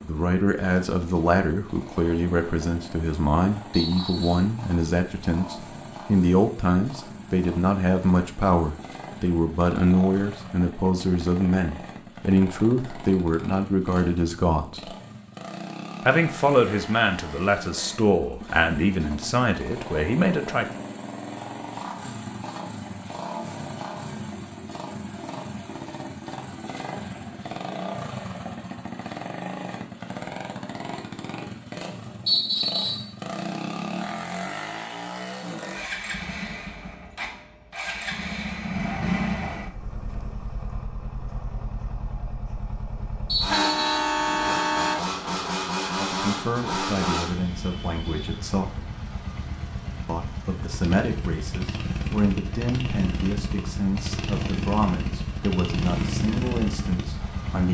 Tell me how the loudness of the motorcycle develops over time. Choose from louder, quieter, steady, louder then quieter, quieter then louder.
louder.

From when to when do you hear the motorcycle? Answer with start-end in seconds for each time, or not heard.
0.0-57.6.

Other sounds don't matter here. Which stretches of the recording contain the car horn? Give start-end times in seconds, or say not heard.
43.5-45.0.